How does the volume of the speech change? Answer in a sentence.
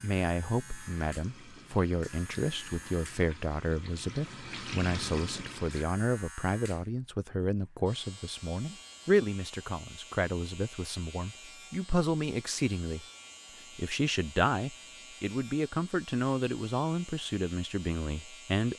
The volume of the speech stays about the same.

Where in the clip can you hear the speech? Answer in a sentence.
The speech can be heard from 0.0 to 13.1 s and from 13.8 to 18.7 s.